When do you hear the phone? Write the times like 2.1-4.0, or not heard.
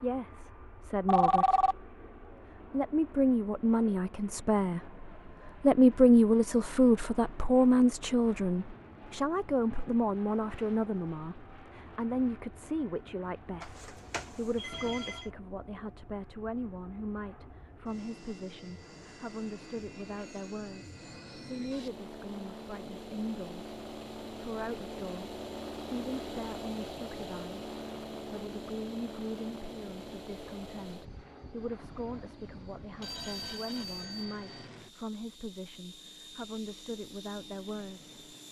1.1-1.8, 13.6-15.2, 33.0-34.7.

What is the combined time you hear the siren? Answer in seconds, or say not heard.
not heard.